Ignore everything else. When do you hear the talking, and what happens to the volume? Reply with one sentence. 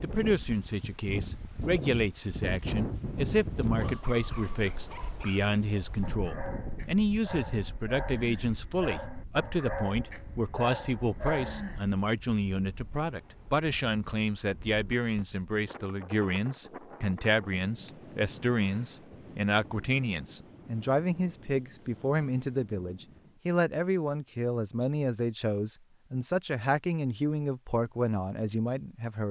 The talking can be heard from 0.0 to 29.2 s, at a steady volume.